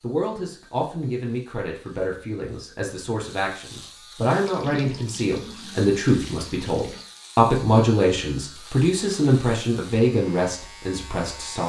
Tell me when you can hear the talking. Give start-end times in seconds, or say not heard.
0.0-11.6.